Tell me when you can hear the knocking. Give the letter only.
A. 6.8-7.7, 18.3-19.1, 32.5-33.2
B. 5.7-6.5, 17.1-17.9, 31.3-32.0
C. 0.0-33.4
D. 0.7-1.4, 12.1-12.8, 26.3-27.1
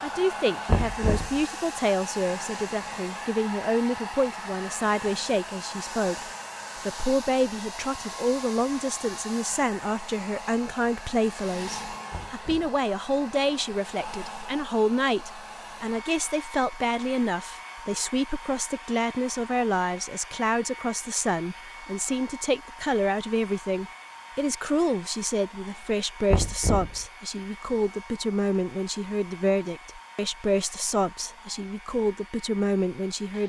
D.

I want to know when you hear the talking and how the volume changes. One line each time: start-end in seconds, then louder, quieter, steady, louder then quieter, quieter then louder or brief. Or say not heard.
0.0-33.4 steady.